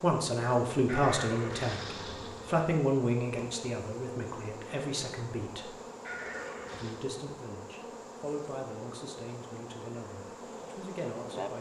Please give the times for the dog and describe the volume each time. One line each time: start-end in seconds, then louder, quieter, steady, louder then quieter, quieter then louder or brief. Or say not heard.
not heard.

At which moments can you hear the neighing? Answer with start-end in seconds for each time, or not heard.
0.8-2.7, 6.0-7.0.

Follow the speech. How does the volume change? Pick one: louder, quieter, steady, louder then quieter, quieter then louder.
quieter.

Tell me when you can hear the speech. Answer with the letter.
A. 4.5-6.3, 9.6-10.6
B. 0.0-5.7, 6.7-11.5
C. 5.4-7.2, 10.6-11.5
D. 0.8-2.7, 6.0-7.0
B.